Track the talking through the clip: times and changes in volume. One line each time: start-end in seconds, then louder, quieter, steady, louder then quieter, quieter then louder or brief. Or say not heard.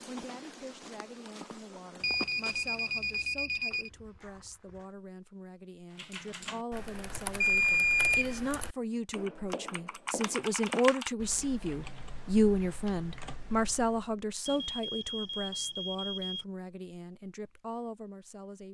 0.1-18.6 louder then quieter.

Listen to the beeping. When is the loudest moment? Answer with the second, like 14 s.
8 s.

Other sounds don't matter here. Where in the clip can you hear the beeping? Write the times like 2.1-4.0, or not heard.
2.0-3.9, 7.4-8.4, 14.4-16.4.